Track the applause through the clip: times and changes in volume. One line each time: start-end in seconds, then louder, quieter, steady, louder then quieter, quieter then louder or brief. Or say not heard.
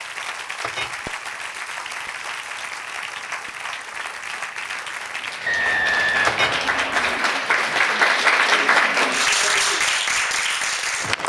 0.0-11.2 louder.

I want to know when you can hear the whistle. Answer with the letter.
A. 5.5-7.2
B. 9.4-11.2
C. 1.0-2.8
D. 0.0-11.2
A.